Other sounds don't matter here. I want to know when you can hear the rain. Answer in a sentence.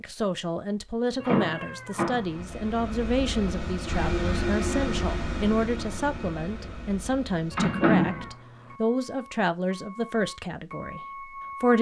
The rain can't be heard in this clip.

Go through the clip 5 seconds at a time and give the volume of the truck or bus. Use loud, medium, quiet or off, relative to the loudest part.
loud, medium, medium.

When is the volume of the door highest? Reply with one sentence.
The loudest moment of the door is at 8 seconds.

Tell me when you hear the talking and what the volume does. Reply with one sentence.
You can hear the talking from 0.0 to 11.7 s, at a steady volume.